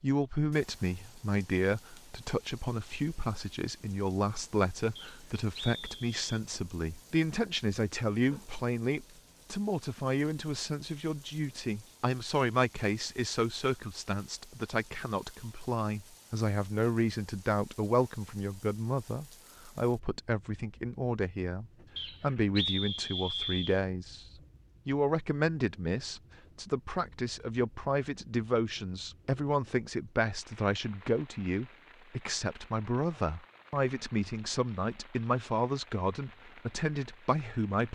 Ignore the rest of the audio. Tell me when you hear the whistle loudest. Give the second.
23 s.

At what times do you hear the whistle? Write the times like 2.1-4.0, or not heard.
5.0-6.3, 21.9-23.8.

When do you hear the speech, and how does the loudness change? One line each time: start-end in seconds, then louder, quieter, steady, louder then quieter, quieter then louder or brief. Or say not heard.
0.0-37.8 steady.